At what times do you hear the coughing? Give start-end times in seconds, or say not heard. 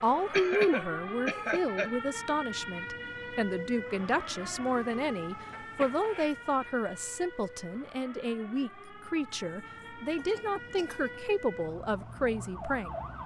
0.3-1.9, 5.5-6.3, 9.8-11.2.